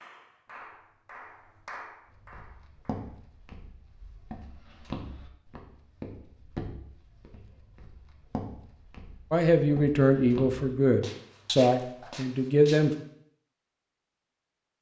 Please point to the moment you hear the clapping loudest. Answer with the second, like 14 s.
2 s.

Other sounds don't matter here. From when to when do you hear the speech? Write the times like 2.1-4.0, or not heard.
9.3-12.9.